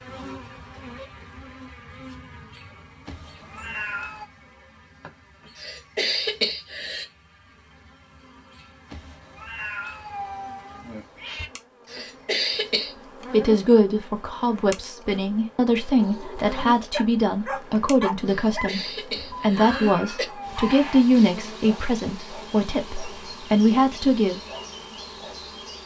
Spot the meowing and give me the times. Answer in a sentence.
You can hear the meowing from 3.0 to 4.3 s, from 8.8 to 11.5 s and from 19.1 to 20.6 s.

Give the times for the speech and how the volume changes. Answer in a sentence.
You can hear the speech from 13.3 to 24.4 s, at a steady volume.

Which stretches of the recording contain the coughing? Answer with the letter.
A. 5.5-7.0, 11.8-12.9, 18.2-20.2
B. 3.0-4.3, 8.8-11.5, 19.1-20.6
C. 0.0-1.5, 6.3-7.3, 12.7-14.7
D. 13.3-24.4
A.